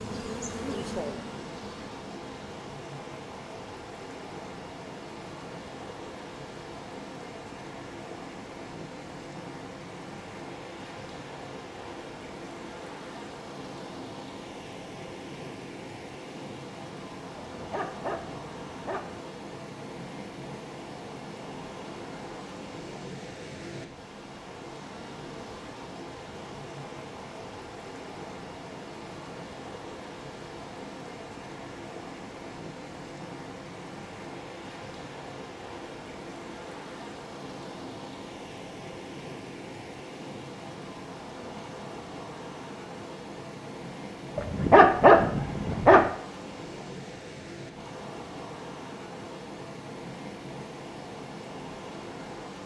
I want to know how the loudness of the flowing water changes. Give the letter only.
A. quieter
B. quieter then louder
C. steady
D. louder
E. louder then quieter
C.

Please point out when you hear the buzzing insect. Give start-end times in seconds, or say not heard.
0.0-2.5.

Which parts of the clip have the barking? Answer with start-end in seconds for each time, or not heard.
17.4-19.2, 44.4-46.0.